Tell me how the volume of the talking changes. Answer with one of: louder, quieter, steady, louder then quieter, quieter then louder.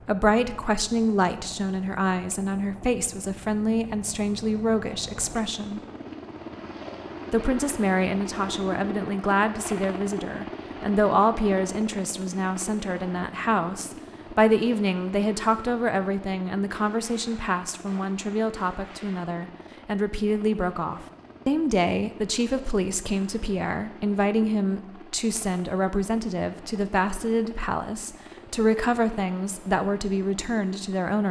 steady.